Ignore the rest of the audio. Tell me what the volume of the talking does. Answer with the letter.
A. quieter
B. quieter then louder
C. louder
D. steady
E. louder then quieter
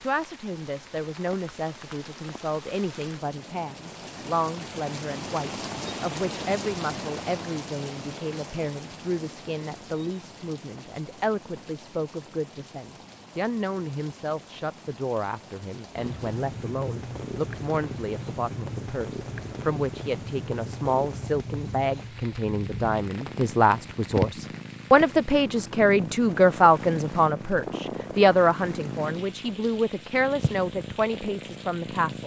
C.